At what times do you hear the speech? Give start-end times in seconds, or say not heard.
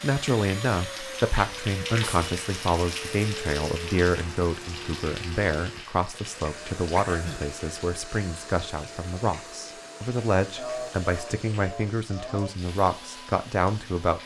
0.0-14.2.